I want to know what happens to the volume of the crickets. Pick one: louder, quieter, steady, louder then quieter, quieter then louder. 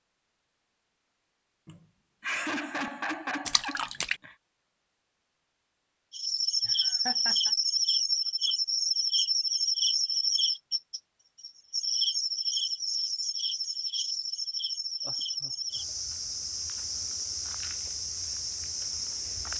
quieter.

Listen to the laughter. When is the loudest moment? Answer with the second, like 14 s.
2 s.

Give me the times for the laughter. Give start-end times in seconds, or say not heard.
1.6-4.3, 6.7-7.5, 15.1-16.0.